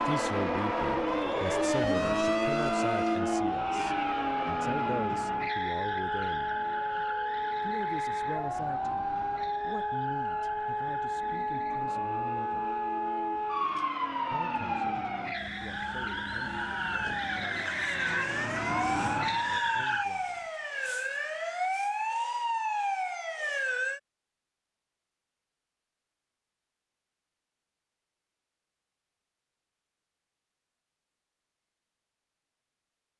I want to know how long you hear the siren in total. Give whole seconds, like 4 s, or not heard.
24 s.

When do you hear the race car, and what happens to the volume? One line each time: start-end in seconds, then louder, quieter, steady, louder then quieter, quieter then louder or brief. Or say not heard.
0.0-20.1 quieter then louder.